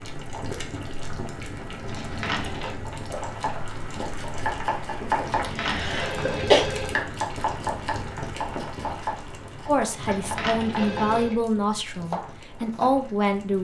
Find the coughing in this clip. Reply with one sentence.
You can hear the coughing from 5.4 to 6.7 s.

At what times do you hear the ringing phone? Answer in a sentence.
You can hear the ringing phone from 1.8 to 2.8 s, from 5.2 to 7.0 s and from 9.9 to 11.4 s.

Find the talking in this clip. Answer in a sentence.
You can hear the talking from 9.7 to 13.5 s.